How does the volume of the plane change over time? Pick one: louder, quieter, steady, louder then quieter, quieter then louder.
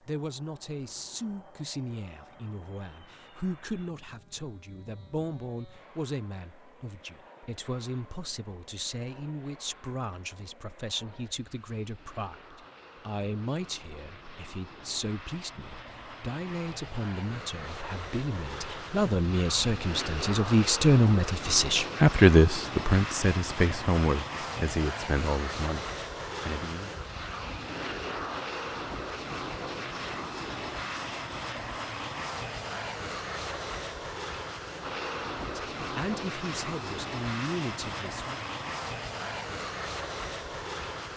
louder.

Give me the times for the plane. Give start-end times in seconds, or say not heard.
0.0-41.1.